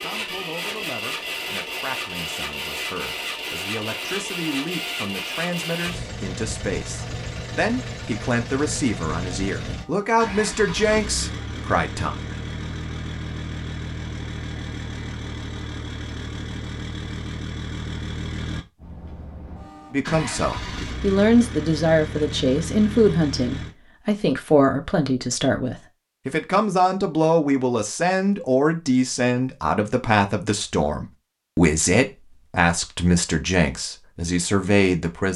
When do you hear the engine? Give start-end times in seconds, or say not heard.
0.0-23.8.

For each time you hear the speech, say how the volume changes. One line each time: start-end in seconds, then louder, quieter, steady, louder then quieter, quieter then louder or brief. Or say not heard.
0.0-12.2 louder
19.9-35.3 steady.